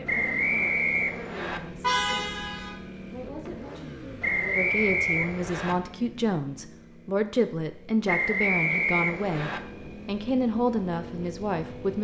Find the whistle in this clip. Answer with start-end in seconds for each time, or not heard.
0.1-1.6, 4.2-5.8, 8.1-9.6.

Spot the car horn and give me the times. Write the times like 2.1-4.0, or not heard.
1.8-2.7.